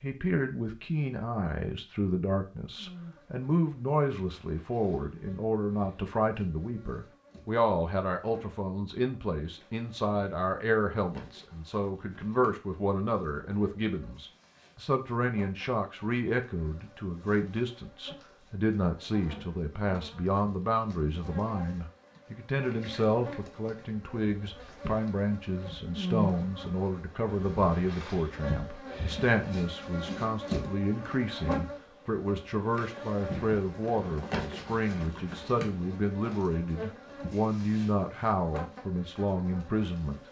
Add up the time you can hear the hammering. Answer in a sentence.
You can't hear the hammering here.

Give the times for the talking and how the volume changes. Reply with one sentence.
You can hear the talking from 0.0 to 40.2 s, at a steady volume.